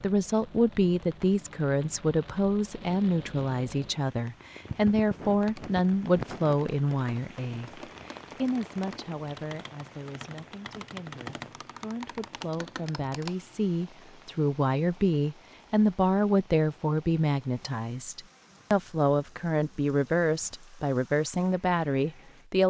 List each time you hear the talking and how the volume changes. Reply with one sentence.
You can hear the talking from 0.0 to 22.6 s, getting quieter then louder.